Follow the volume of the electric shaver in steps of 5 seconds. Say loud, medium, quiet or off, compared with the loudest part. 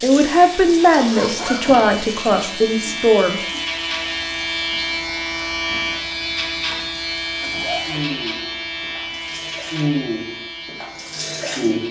loud, loud, medium.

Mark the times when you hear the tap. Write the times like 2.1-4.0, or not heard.
0.0-11.8.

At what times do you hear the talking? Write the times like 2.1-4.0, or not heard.
0.0-3.4.